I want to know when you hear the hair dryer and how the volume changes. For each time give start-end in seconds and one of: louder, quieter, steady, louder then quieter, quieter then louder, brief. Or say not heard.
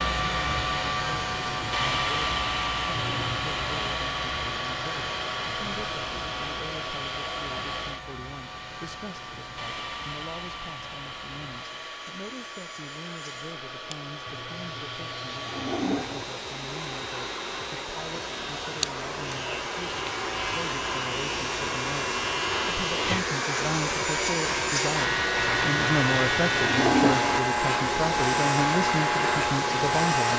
0.0-30.3 quieter then louder.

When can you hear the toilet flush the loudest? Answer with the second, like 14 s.
27 s.